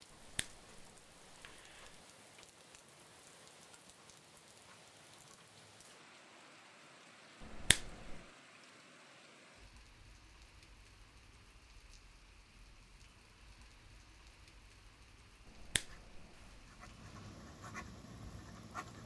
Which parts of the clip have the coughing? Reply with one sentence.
You can't hear the coughing here.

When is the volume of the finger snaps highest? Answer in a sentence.
The volume of the finger snaps peaks at 8 seconds.